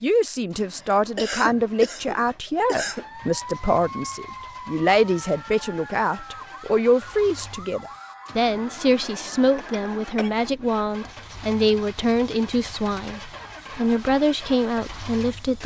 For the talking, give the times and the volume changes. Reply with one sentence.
The talking can be heard from 0.0 to 15.6 s, at a steady volume.